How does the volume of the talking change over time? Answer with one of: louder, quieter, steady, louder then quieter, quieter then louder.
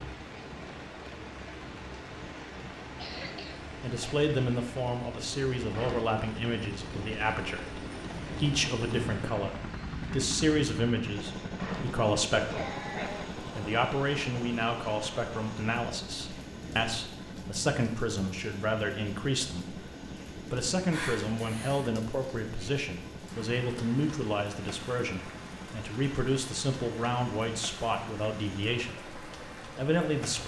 steady.